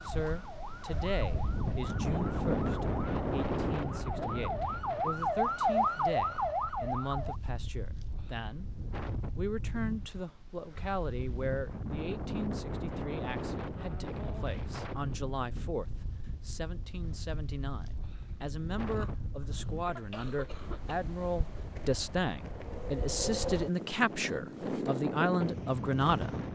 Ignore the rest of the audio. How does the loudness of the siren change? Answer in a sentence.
The volume of the siren goes up.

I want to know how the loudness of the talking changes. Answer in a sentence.
The volume of the talking goes up.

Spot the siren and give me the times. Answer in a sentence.
The siren can be heard from 0.0 to 7.4 s.